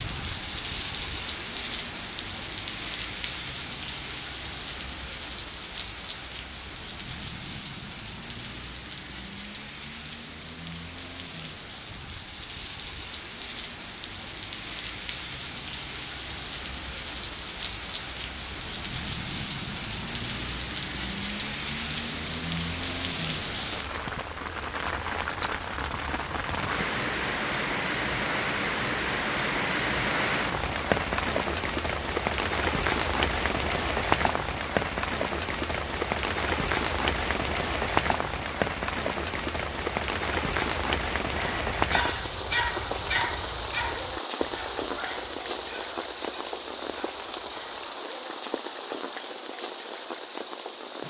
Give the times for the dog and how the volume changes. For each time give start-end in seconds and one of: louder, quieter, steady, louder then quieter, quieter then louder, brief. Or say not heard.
41.3-48.0 quieter.